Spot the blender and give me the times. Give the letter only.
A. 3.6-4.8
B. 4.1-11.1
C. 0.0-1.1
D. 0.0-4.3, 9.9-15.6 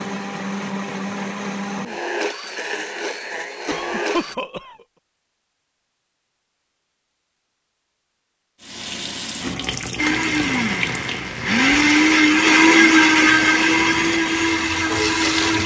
D.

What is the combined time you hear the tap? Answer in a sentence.
You can hear the tap for 7 seconds altogether.